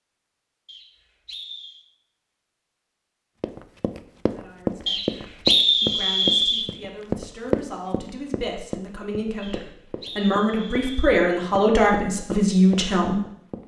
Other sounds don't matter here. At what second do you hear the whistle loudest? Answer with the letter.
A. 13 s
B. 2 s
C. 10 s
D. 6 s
D.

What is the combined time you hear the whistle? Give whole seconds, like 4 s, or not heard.
5 s.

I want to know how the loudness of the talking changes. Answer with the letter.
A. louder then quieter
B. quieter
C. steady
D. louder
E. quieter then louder
D.